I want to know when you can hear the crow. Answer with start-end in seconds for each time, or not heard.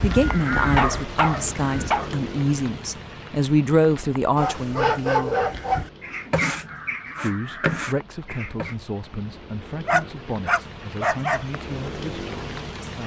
0.0-2.0, 5.3-8.8.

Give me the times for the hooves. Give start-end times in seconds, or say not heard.
not heard.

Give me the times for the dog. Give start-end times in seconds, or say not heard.
0.6-2.1, 4.3-5.9, 9.8-11.4.